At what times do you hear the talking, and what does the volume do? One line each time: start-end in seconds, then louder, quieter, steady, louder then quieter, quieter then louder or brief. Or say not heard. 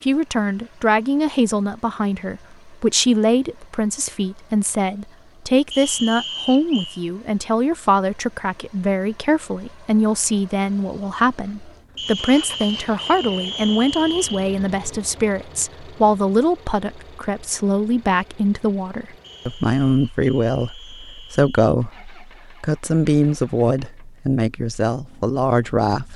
0.0-26.1 steady.